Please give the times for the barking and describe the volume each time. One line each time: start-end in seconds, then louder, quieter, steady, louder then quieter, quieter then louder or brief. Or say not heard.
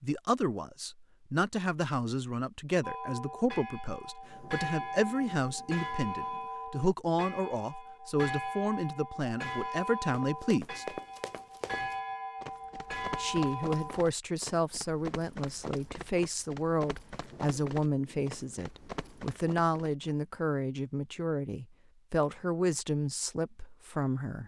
not heard.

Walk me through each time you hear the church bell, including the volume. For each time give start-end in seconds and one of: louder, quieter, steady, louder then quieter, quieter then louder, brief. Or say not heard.
2.8-14.1 steady.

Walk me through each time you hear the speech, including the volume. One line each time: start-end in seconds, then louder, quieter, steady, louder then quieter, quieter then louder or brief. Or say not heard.
0.0-11.0 steady
13.2-24.4 steady.